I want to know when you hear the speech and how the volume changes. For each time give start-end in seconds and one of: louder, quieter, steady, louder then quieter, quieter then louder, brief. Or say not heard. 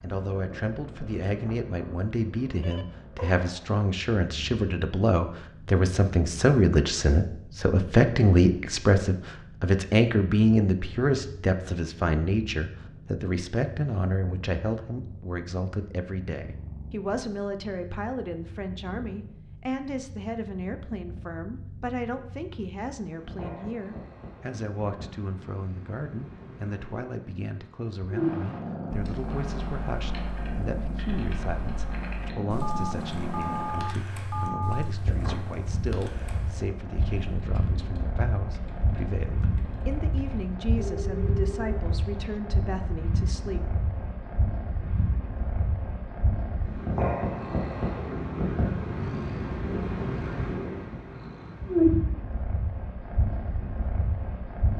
0.0-43.6 quieter.